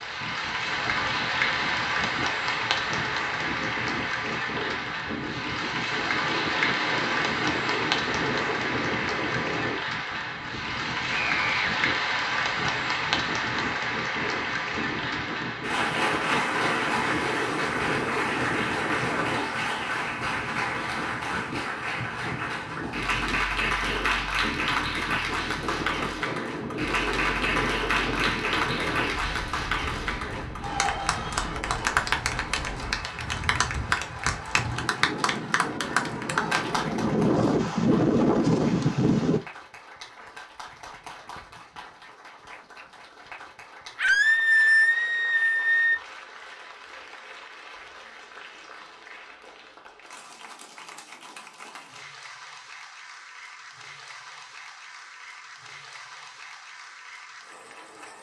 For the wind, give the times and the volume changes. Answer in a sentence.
The wind can be heard from 0.0 to 39.4 s, getting louder.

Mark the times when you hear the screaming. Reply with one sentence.
You can hear the screaming from 11.1 to 11.7 s and from 44.0 to 46.0 s.